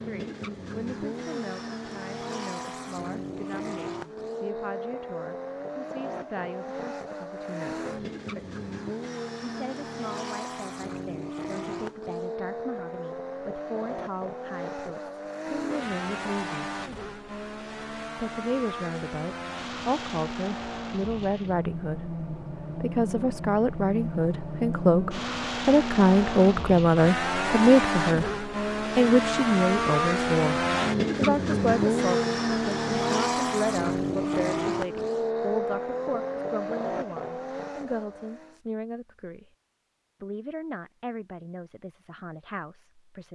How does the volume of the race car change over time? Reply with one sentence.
The loudness of the race car goes up.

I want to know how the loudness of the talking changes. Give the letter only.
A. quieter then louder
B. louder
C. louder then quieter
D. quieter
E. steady
C.